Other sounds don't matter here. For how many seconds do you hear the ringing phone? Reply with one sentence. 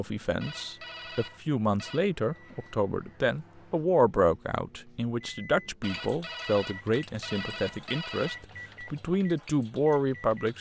The ringing phone can be heard for 4 seconds in total.